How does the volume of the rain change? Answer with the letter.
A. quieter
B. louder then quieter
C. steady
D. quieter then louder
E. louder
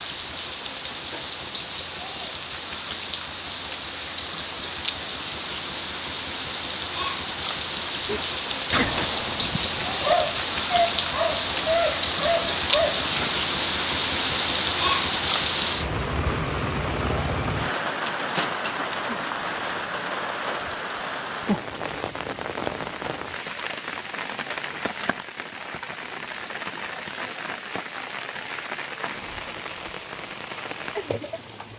B.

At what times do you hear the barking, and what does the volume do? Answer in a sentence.
You can hear the barking from 8.1 to 13.3 s, at a steady volume.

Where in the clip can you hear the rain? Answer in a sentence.
You can hear the rain from 0.0 to 31.7 s.